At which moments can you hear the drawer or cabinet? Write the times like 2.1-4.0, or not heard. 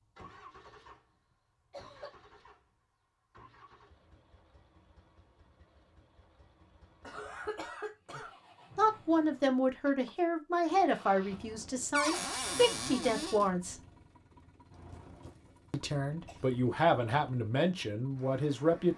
11.9-13.5.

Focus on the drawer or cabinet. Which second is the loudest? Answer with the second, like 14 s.
12 s.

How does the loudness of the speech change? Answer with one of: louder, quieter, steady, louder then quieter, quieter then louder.
steady.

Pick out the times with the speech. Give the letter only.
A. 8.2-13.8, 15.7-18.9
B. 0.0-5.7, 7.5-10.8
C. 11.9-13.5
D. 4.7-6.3
A.